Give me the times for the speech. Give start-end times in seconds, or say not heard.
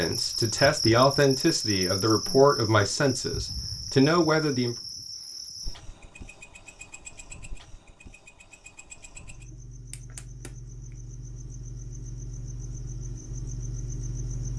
0.0-4.8.